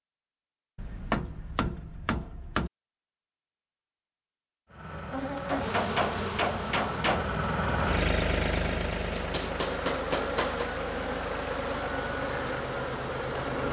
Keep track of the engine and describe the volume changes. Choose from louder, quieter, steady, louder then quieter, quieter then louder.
louder then quieter.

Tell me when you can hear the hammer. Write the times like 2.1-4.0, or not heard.
0.8-2.7, 5.5-7.3, 9.1-10.7.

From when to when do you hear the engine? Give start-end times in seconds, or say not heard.
4.7-13.6.